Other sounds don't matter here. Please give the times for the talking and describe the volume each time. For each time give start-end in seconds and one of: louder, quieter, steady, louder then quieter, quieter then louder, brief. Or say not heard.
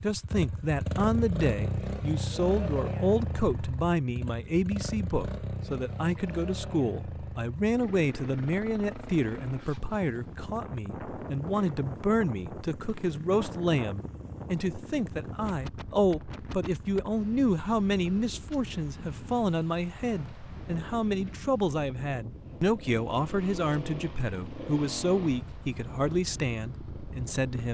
0.0-27.6 steady.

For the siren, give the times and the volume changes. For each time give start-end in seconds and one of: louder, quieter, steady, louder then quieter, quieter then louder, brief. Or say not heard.
not heard.